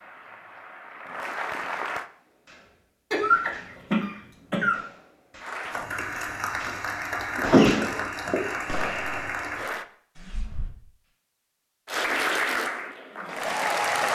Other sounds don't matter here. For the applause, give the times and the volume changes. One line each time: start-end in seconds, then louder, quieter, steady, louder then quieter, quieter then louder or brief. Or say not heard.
0.0-2.1 brief
5.4-9.8 steady
11.8-14.0 brief.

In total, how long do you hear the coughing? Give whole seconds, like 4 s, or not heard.
3 s.